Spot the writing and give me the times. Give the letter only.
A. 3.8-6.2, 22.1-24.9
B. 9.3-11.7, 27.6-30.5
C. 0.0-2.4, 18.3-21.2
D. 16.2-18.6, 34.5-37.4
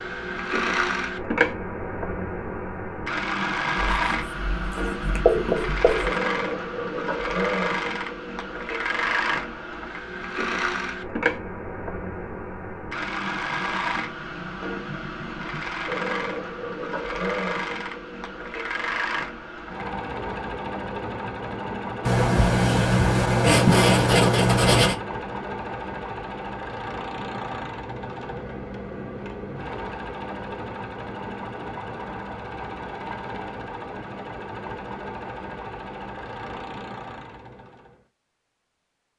A.